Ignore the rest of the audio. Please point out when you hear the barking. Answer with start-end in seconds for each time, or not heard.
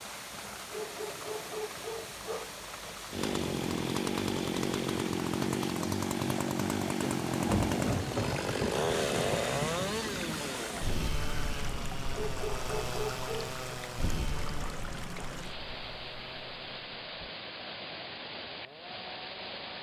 0.7-2.5, 12.1-13.5.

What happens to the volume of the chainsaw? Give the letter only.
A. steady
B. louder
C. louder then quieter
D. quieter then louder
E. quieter
E.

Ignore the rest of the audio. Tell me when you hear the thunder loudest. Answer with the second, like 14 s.
8 s.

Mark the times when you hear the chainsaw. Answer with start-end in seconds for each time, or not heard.
3.1-19.7.